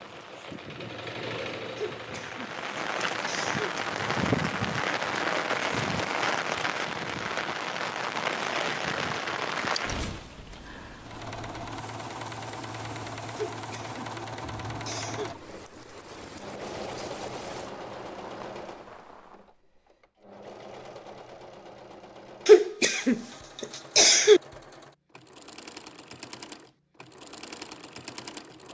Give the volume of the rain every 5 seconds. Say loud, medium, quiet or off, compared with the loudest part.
loud, loud, quiet, quiet, off, off.